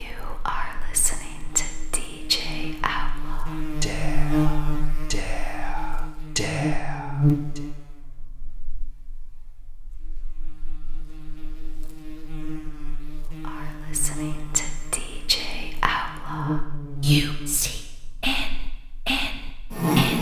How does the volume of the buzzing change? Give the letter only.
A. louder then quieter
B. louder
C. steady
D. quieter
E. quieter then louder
E.